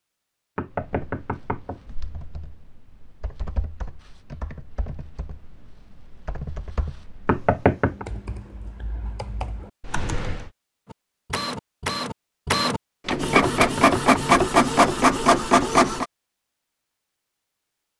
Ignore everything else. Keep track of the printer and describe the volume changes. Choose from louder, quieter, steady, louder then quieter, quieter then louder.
louder.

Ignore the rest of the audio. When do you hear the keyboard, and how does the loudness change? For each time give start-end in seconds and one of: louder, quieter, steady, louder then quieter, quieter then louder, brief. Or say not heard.
0.7-10.4 louder.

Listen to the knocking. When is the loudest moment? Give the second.
8 s.